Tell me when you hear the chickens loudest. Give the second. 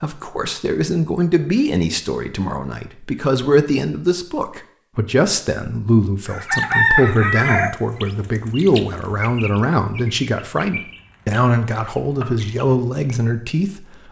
7 s.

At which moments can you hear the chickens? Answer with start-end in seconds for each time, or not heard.
6.2-13.1.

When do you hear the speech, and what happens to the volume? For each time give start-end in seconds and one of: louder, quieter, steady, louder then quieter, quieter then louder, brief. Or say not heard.
0.0-14.0 steady.